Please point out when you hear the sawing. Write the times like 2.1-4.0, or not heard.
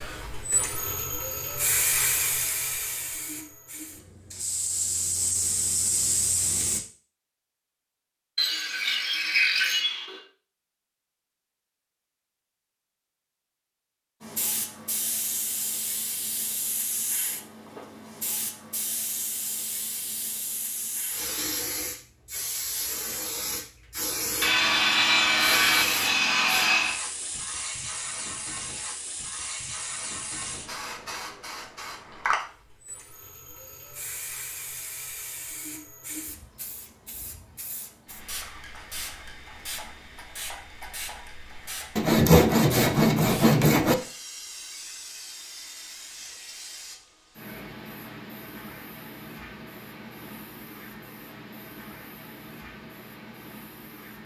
8.3-10.2, 24.4-27.0, 42.0-44.0.